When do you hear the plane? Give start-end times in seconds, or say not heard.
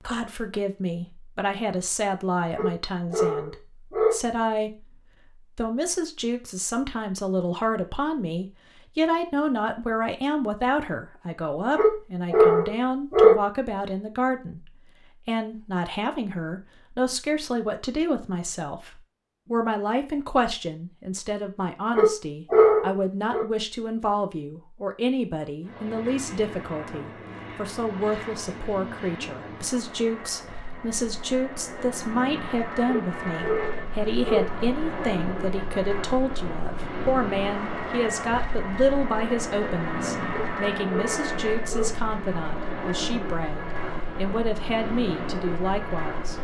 25.6-46.3.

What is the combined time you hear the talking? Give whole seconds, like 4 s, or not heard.
46 s.